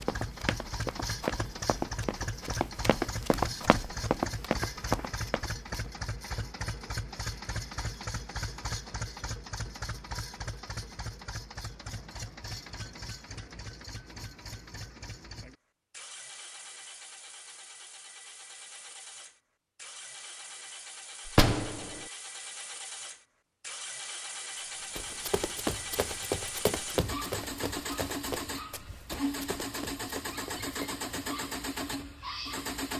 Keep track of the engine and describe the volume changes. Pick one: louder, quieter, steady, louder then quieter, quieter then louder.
quieter then louder.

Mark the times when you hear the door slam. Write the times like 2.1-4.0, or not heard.
21.2-22.0.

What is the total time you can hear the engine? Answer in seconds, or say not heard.
33 s.